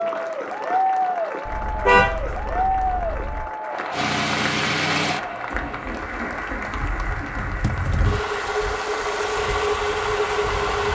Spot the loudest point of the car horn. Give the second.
2 s.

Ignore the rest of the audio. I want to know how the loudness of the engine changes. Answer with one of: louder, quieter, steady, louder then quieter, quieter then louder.
quieter then louder.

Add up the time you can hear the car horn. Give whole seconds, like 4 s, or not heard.
2 s.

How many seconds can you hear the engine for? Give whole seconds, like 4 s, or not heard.
7 s.